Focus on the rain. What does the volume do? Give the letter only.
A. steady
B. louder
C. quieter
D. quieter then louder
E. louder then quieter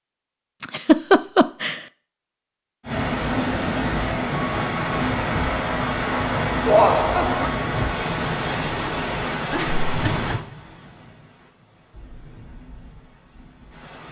C.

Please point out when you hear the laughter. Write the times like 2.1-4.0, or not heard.
0.6-1.8, 6.7-7.5, 9.5-10.3.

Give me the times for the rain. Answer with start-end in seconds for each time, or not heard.
2.9-14.0.